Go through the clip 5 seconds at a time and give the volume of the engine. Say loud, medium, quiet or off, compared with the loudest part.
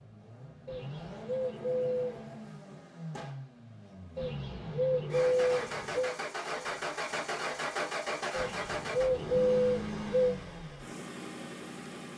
medium, loud, medium.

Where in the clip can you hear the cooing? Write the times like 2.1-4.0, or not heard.
0.7-2.3, 4.2-6.2, 8.3-10.3.